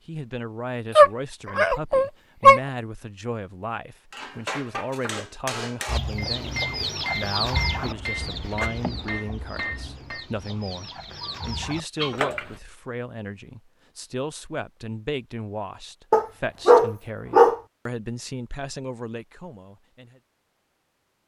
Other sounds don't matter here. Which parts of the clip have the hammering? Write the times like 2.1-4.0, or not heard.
4.1-10.2.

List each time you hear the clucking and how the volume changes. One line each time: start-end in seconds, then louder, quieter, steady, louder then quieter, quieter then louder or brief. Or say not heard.
5.8-12.6 quieter then louder.